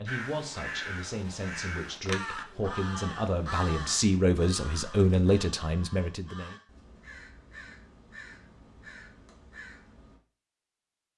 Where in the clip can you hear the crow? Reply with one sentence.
The crow can be heard from 0.1 to 10.2 s.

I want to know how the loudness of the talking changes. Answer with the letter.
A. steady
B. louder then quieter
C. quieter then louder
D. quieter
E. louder
E.